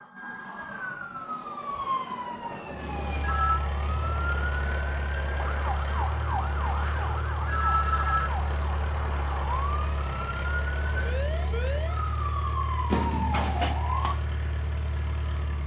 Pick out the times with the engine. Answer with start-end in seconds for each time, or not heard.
2.8-15.6.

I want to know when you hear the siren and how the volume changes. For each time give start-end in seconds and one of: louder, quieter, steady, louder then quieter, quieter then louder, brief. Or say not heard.
0.0-15.6 steady.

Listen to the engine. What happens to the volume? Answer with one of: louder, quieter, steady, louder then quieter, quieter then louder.
steady.